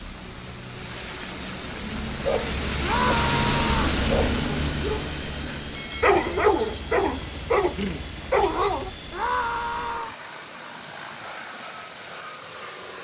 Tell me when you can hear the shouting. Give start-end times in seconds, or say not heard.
2.8-4.0, 9.1-10.2.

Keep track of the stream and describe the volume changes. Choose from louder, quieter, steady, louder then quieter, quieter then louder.
louder then quieter.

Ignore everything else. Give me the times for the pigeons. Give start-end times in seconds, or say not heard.
not heard.